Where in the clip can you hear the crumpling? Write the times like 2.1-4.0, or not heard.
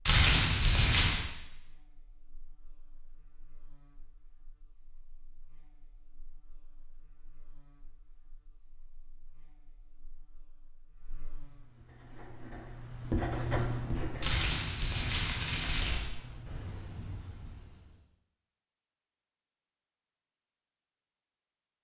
0.1-1.2, 14.2-16.0.